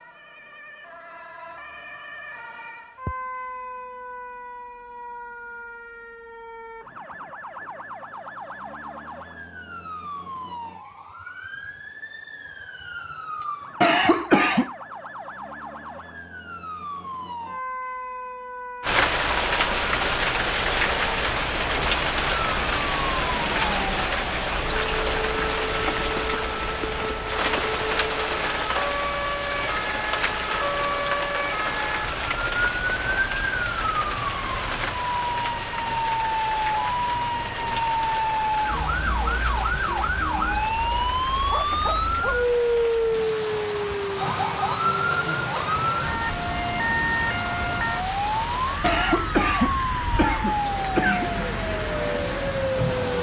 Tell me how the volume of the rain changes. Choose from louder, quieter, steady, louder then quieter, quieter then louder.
quieter.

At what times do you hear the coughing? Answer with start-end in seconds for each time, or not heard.
13.8-14.7, 48.8-51.3.